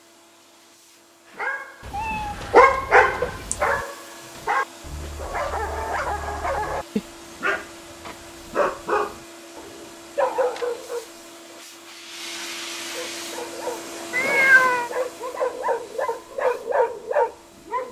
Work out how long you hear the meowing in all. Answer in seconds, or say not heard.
3 s.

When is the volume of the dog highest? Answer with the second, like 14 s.
3 s.